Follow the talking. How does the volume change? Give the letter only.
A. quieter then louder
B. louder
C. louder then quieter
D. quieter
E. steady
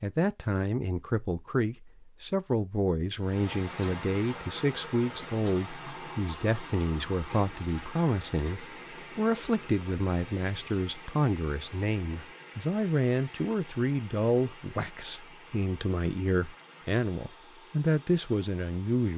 E.